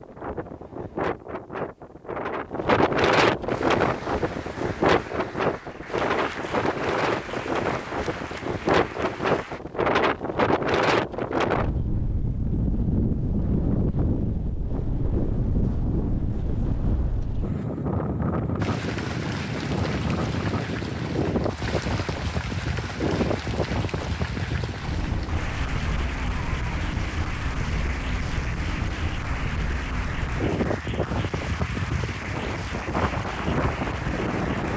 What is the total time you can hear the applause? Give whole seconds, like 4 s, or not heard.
22 s.